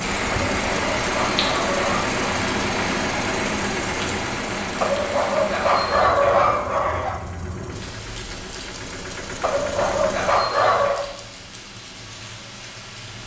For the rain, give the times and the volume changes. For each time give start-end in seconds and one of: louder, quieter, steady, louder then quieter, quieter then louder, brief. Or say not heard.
0.0-13.2 quieter.